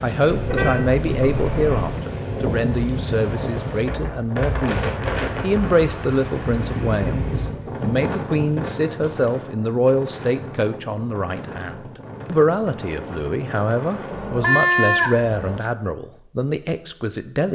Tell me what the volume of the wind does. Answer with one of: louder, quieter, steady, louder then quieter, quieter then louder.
quieter.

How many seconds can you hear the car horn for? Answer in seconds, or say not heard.
3 s.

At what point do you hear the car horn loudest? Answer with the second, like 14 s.
15 s.